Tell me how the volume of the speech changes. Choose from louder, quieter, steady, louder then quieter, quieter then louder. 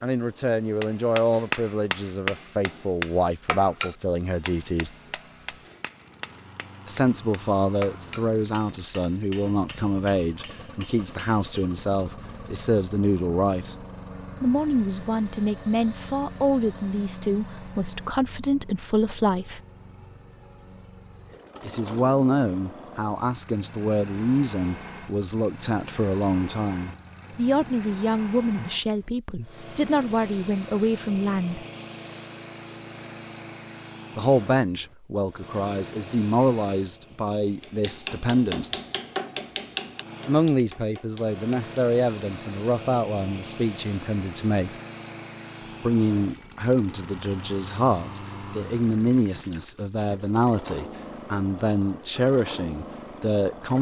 steady.